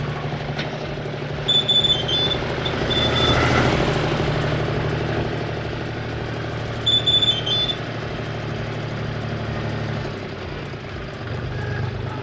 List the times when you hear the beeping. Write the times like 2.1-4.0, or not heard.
1.4-3.1, 6.8-7.8.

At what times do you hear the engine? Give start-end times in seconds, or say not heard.
0.0-12.1.